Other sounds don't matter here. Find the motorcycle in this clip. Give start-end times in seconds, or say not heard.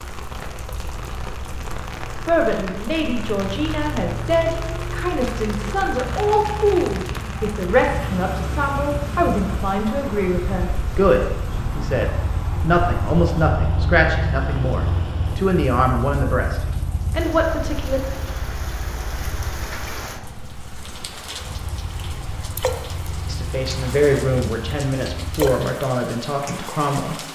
0.1-25.5.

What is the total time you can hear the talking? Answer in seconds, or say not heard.
20 s.